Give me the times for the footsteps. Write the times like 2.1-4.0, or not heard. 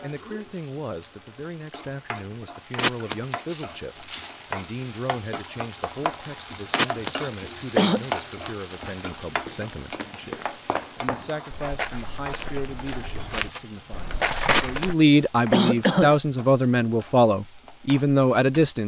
8.8-14.9.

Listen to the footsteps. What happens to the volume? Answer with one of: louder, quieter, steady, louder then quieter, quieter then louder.
louder.